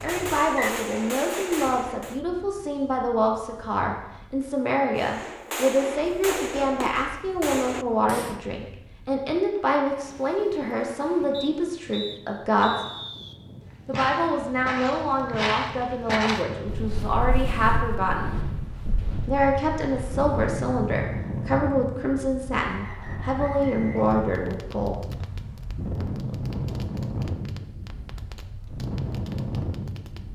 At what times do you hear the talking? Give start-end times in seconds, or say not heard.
0.0-12.7, 13.8-18.3, 19.2-25.0.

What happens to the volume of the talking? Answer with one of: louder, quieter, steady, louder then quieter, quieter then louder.
steady.